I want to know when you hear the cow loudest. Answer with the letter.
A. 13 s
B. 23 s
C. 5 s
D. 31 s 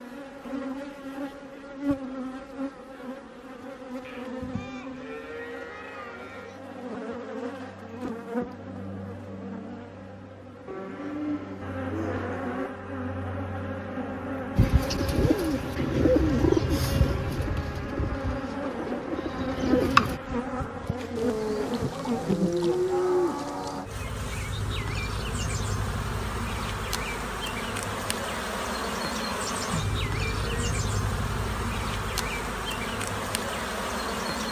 B.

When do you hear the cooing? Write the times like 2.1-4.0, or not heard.
14.6-20.2.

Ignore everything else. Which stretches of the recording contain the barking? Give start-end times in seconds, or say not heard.
not heard.